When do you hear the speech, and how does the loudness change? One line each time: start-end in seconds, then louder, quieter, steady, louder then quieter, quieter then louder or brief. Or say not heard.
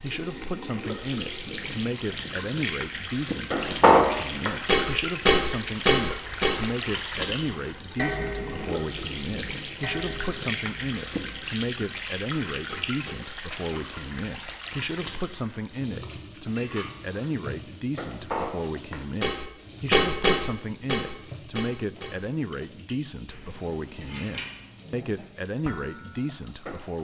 0.0-26.9 steady.